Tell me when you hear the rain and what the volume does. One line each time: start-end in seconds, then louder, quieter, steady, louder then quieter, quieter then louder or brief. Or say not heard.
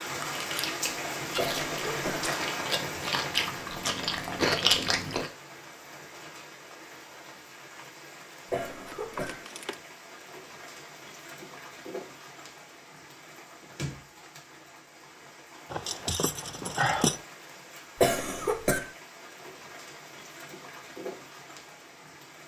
0.0-22.4 quieter.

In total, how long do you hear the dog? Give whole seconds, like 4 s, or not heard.
not heard.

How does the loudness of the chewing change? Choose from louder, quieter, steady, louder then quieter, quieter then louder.
louder.